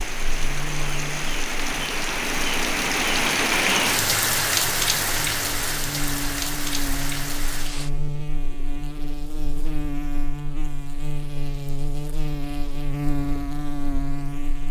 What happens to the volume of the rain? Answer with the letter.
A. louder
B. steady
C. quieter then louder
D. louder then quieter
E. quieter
D.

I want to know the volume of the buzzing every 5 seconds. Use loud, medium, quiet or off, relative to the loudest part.
medium, loud, loud.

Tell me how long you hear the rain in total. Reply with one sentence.
You can hear the rain for 8 seconds altogether.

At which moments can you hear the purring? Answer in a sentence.
The purring can't be heard in this clip.